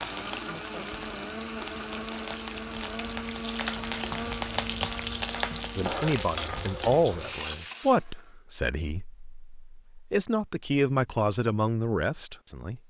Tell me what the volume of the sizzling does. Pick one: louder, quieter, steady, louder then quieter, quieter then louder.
louder.